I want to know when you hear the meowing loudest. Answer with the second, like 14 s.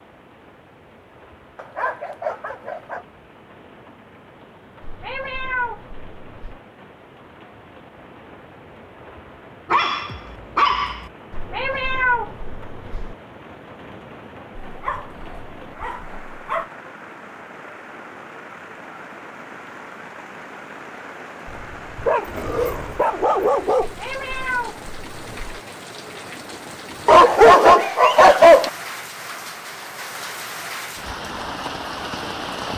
12 s.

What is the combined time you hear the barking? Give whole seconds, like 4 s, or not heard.
9 s.